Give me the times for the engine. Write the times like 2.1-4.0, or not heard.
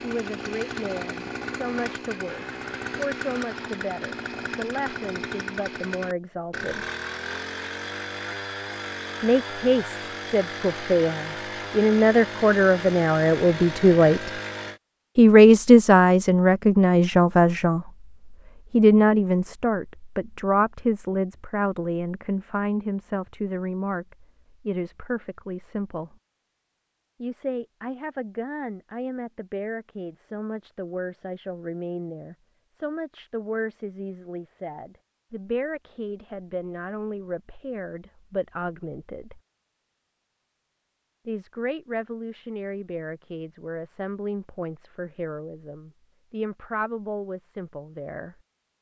0.0-14.8.